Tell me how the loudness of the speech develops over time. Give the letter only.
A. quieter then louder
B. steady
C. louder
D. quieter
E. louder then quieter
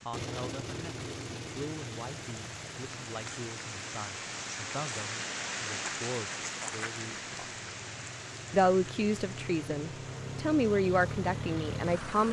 C.